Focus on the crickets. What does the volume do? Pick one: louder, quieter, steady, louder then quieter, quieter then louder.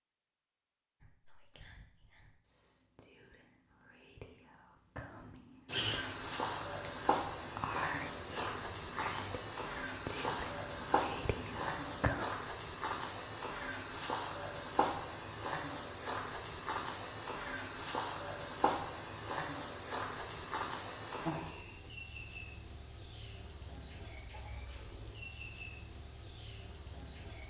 louder.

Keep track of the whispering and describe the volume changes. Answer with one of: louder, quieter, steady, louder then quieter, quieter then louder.
louder.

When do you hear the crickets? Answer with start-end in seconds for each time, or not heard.
5.7-27.4.